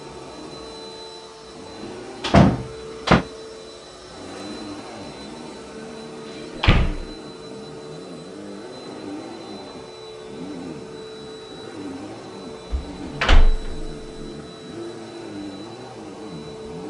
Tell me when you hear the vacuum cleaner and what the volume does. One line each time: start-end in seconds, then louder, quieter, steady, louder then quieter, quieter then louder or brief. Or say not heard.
0.0-16.8 steady.